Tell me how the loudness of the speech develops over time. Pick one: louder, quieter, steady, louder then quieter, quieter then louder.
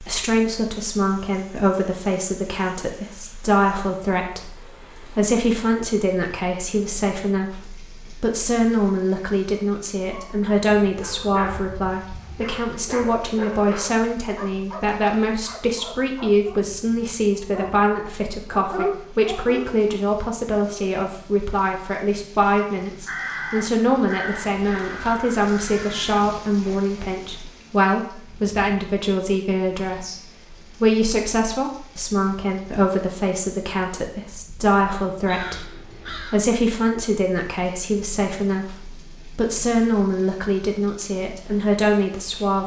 steady.